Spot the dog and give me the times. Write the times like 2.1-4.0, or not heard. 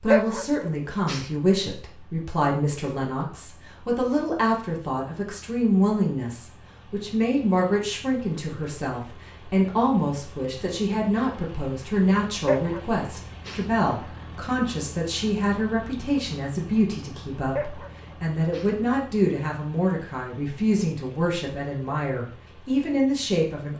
0.1-1.3, 12.4-13.7, 17.6-18.8.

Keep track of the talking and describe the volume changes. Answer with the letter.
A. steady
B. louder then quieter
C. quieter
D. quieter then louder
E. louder
A.